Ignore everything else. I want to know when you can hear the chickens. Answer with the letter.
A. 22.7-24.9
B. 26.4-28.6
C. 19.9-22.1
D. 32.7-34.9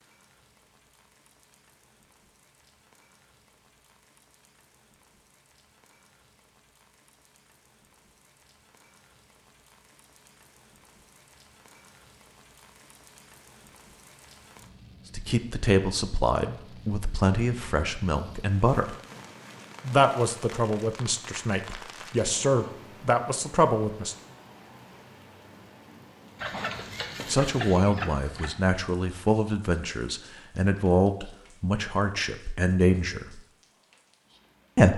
B.